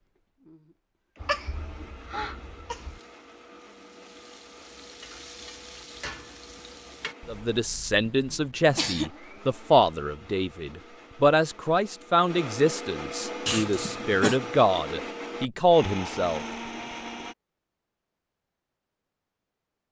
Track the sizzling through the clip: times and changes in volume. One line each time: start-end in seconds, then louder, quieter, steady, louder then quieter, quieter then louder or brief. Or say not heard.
2.8-7.2 louder.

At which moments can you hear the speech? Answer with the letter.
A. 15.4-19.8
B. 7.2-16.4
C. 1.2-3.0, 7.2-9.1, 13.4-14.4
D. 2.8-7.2
B.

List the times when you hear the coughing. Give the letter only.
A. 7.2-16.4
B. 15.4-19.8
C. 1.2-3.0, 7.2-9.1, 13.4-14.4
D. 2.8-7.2
C.